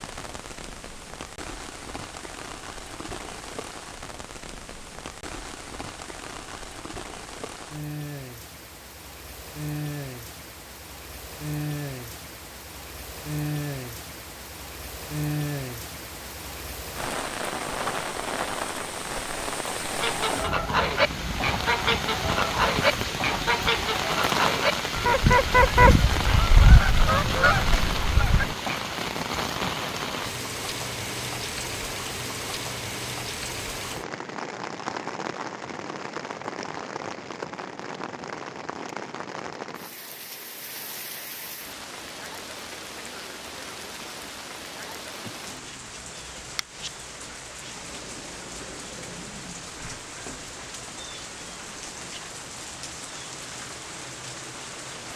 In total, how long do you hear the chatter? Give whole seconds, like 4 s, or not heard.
not heard.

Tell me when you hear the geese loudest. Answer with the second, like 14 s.
26 s.